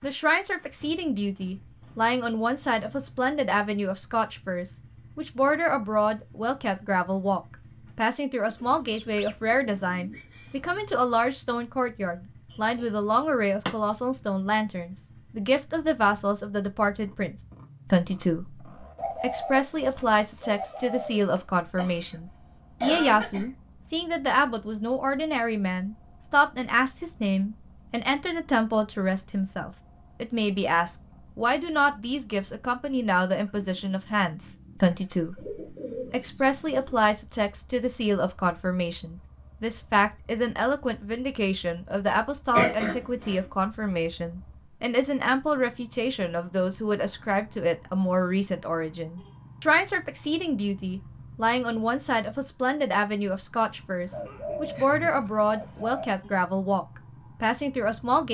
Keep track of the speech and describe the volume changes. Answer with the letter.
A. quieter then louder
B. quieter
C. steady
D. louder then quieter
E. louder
C.